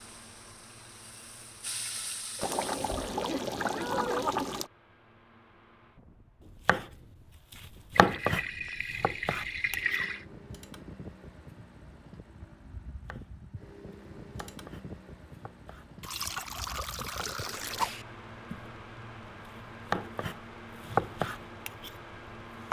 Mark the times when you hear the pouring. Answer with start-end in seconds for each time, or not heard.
2.4-4.7, 8.0-10.2, 16.0-18.1.